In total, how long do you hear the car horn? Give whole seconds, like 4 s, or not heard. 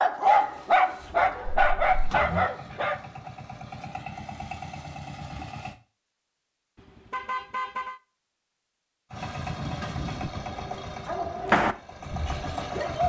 2 s.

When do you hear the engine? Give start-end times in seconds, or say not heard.
0.2-5.8, 9.1-13.0.